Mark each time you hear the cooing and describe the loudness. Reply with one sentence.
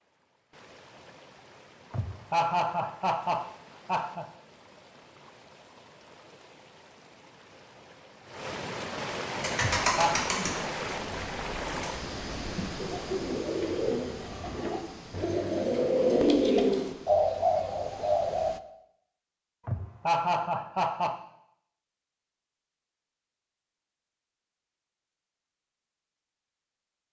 You can hear the cooing from 9.3 to 18.5 s, getting quieter then louder.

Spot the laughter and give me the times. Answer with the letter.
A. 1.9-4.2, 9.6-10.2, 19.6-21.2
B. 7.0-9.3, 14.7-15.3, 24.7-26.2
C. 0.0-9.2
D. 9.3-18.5
A.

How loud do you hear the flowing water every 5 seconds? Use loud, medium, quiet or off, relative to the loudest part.
quiet, loud, loud, medium, off, off.